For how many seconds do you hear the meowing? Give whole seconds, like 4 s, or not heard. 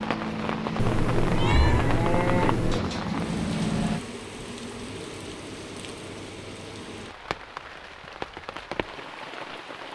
2 s.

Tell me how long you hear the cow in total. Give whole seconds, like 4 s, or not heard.
4 s.